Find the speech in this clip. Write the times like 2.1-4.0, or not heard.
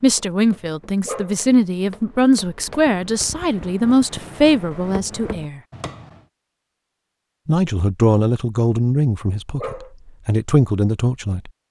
0.0-5.6, 7.5-11.5.